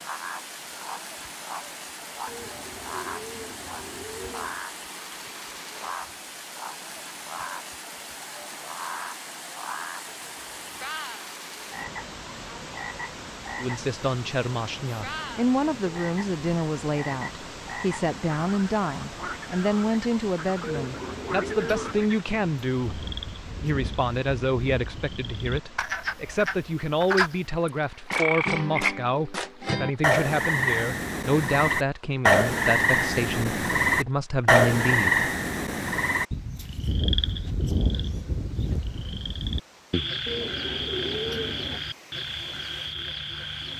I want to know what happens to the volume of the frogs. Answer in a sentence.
The loudness of the frogs goes up, then down.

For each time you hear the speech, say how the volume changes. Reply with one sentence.
You can hear the speech from 13.6 to 35.2 s, at a steady volume.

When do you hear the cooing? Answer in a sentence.
The cooing can be heard from 2.2 to 4.7 s, from 20.6 to 22.1 s and from 40.2 to 41.8 s.